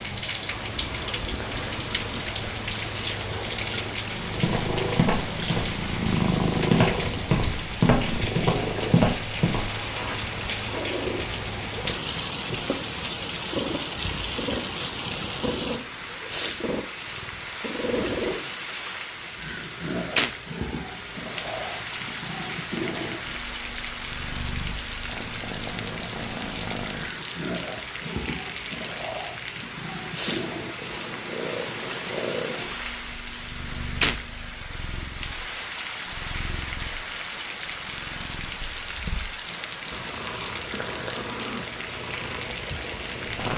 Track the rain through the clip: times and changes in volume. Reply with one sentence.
The rain can be heard from 0.0 to 43.5 s, at a steady volume.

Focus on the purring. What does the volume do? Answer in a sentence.
The volume of the purring goes down.